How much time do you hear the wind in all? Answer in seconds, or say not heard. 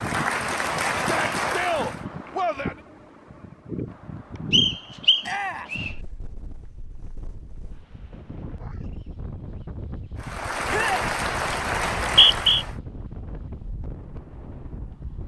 15 s.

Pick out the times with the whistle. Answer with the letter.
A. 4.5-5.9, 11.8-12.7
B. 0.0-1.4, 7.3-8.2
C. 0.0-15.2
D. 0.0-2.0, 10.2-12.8
A.